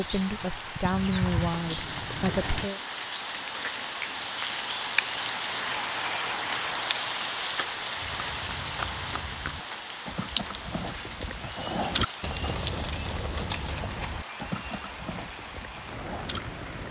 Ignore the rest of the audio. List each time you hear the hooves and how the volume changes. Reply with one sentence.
The hooves can be heard briefly from 0.0 to 2.7 s; and from 8.0 to 16.8 s, getting louder then quieter.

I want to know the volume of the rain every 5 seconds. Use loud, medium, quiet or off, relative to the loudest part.
loud, loud, medium, medium.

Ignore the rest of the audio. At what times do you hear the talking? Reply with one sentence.
You can hear the talking from 0.0 to 2.8 s.